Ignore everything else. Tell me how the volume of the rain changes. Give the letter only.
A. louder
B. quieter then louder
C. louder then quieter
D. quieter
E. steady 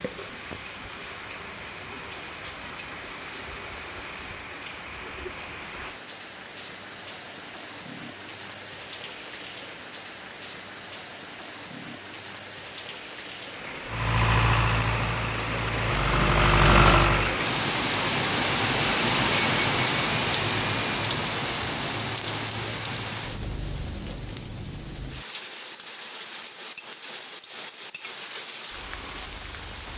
C.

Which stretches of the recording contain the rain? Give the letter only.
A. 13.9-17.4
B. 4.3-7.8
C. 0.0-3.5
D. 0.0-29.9
D.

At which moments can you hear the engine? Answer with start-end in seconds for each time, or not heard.
13.9-17.4.